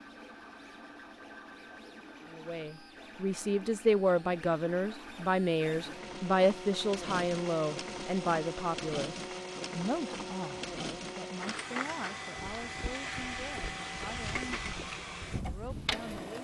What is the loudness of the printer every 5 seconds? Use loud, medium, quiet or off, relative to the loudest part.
medium, loud, loud, loud.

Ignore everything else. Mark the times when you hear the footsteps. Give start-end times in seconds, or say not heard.
12.3-16.4.